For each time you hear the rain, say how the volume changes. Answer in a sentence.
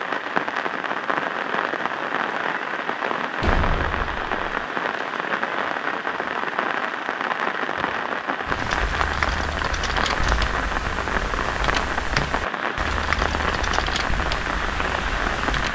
You can hear the rain from 0.0 to 15.6 s, at a steady volume.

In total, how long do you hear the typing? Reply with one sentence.
The typing can be heard for 7 seconds in total.